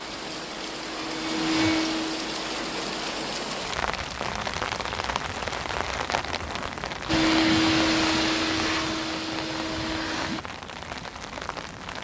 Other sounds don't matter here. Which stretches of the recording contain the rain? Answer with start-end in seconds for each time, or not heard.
0.0-11.9.